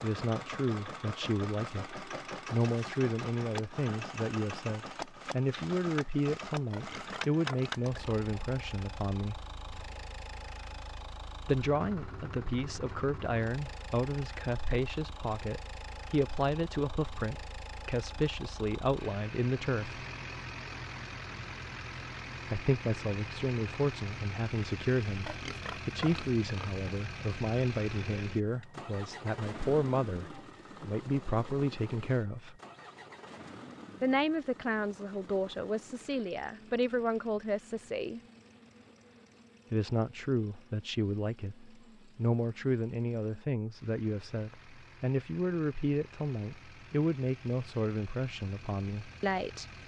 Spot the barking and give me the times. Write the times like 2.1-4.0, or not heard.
not heard.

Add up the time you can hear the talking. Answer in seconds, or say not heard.
42 s.